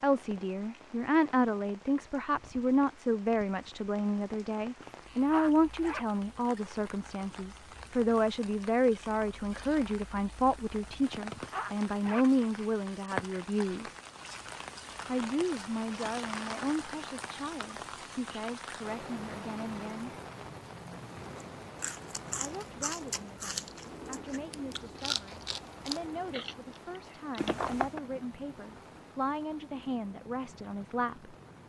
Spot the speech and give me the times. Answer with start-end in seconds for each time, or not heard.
0.0-13.9, 15.1-20.1, 22.4-31.4.